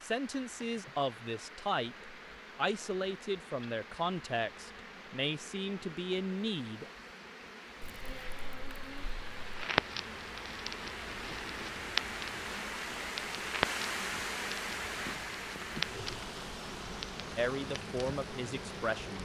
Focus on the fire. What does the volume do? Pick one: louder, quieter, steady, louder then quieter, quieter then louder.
quieter.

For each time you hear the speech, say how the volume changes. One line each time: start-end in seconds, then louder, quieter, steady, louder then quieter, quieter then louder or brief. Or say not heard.
0.0-6.9 steady
17.4-19.2 brief.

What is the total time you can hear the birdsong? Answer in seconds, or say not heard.
not heard.